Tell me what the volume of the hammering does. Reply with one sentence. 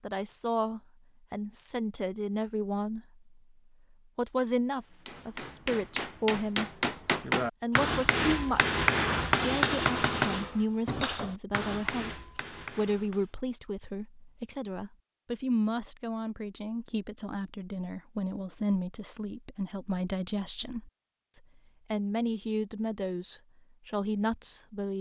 The volume of the hammering goes up, then down.